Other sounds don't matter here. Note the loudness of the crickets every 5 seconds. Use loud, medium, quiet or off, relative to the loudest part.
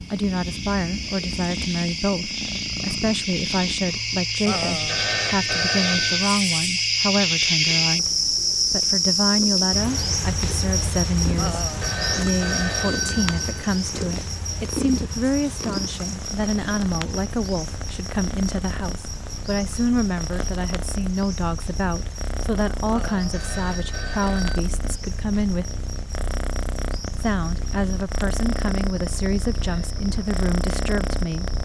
medium, loud, medium, quiet, quiet, quiet, quiet.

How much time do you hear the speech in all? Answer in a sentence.
The speech can be heard for 29 seconds in total.